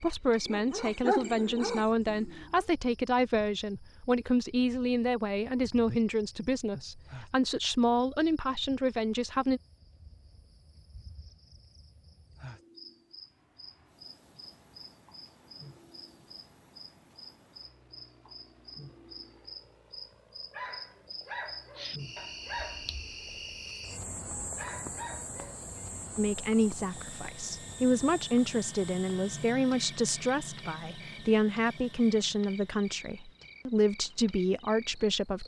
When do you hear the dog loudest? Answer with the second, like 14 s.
1 s.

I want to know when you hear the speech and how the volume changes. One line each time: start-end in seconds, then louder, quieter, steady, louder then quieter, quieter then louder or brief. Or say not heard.
0.0-9.6 steady
26.1-35.4 steady.